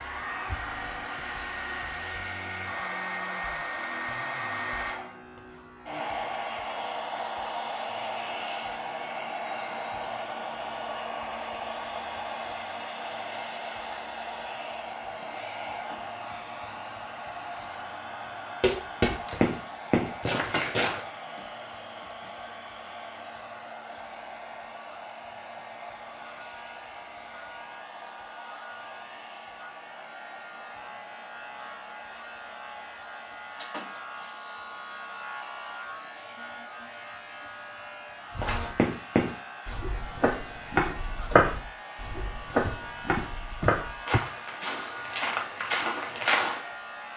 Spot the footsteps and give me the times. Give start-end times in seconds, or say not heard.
18.6-21.0, 38.4-46.7.